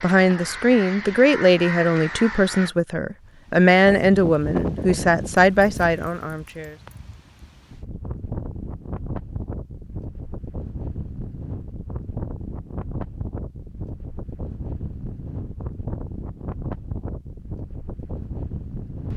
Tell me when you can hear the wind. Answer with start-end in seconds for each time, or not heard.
3.2-19.1.